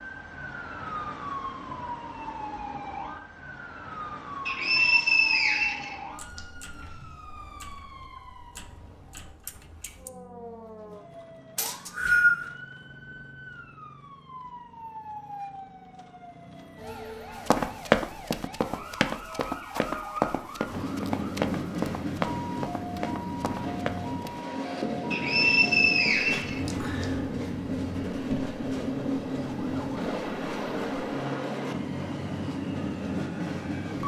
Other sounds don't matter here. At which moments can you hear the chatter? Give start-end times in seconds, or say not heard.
not heard.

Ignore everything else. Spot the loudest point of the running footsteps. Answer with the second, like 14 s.
18 s.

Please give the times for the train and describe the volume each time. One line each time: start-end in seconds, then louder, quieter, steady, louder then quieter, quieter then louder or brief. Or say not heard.
20.6-34.0 steady.